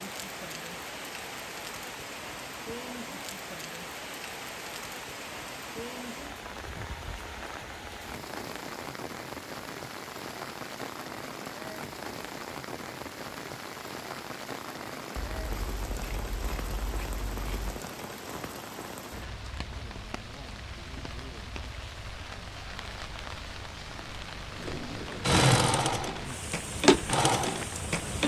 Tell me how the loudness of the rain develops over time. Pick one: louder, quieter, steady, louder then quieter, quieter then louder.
steady.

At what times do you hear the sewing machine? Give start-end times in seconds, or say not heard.
24.6-28.2.